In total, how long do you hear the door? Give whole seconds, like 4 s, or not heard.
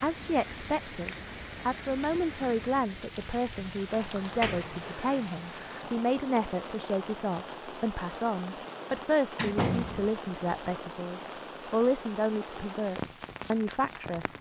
2 s.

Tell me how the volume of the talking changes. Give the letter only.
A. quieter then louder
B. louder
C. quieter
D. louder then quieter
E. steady
E.